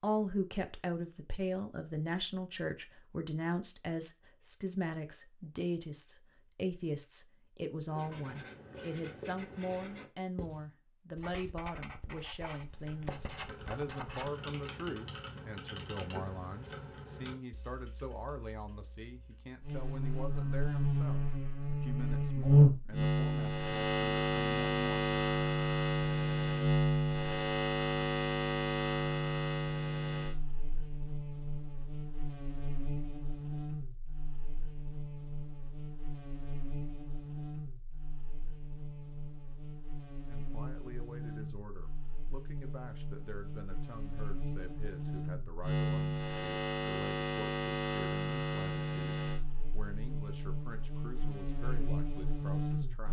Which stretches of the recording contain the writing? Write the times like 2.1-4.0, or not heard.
7.8-14.3.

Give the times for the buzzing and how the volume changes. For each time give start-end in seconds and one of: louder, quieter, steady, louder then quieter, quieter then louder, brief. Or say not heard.
19.6-53.0 quieter then louder.